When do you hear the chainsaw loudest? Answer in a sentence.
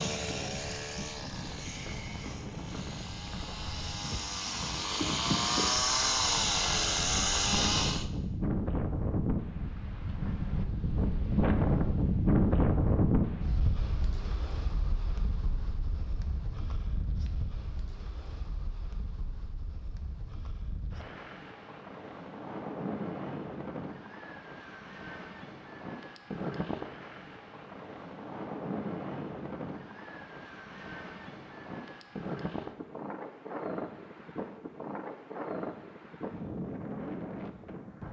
The volume of the chainsaw peaks at 6 seconds.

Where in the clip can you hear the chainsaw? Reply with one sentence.
You can hear the chainsaw from 0.0 to 8.1 s.